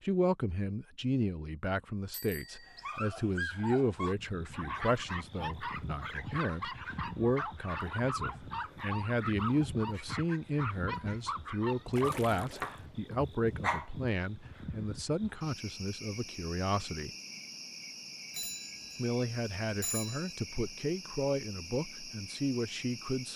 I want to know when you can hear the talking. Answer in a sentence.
You can hear the talking from 0.0 to 17.1 s and from 18.9 to 23.3 s.